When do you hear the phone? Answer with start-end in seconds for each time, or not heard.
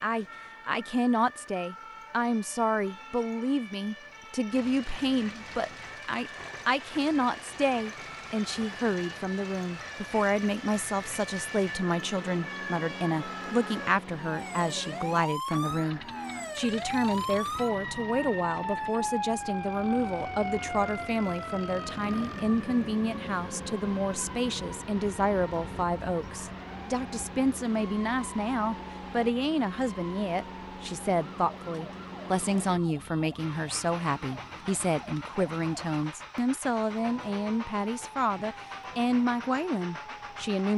not heard.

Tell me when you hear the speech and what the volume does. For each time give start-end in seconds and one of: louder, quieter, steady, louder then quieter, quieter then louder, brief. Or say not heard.
0.0-40.7 steady.